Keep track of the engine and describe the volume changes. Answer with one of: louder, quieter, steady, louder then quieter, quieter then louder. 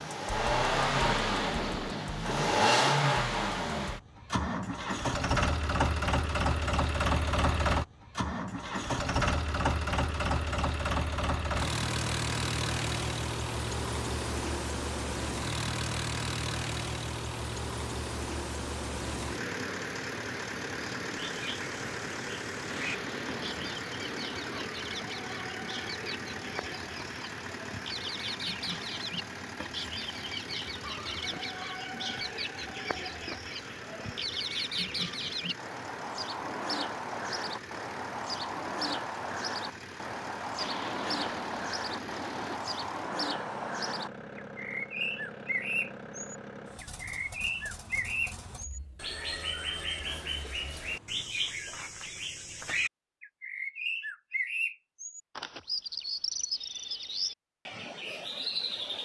quieter.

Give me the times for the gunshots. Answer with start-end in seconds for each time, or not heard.
0.9-3.0, 22.6-24.7, 40.5-42.6.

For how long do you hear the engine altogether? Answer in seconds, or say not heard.
51 s.